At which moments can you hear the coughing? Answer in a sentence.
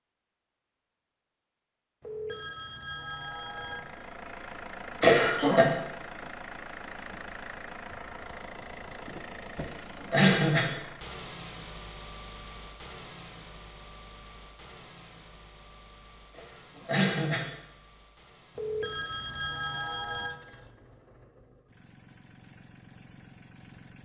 The coughing can be heard from 5.0 to 5.7 s, from 9.6 to 10.7 s and from 16.4 to 17.4 s.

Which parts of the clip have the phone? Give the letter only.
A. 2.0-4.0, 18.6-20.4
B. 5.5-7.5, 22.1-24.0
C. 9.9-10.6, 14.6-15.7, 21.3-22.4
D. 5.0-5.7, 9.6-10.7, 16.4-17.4
A.